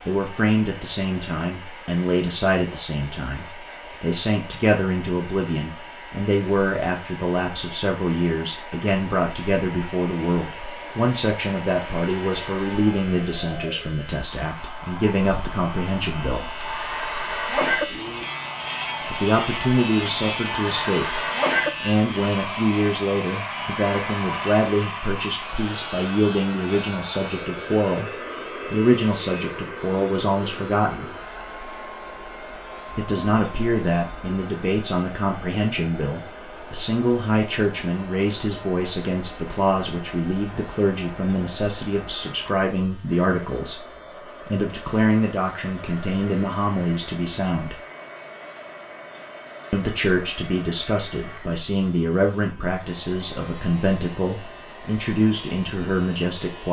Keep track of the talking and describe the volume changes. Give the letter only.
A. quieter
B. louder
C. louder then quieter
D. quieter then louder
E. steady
E.